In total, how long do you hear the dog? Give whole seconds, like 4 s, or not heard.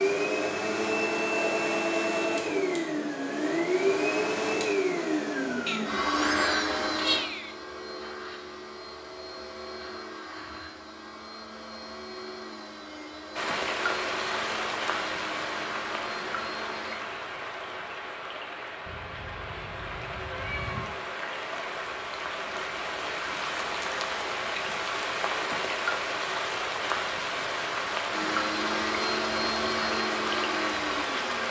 not heard.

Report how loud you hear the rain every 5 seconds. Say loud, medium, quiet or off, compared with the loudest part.
off, off, loud, medium, loud, loud, loud.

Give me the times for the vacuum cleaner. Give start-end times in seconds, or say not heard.
0.0-17.0, 28.1-31.4.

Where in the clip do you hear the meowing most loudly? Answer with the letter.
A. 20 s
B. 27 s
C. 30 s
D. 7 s
D.